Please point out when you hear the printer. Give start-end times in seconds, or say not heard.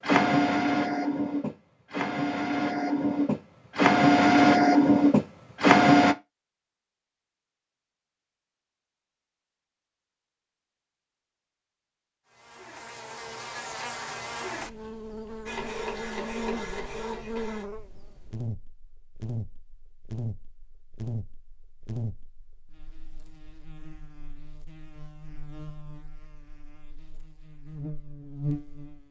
0.0-6.2, 15.4-17.6.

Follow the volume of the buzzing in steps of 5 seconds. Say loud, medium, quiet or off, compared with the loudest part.
off, off, loud, loud, loud, loud.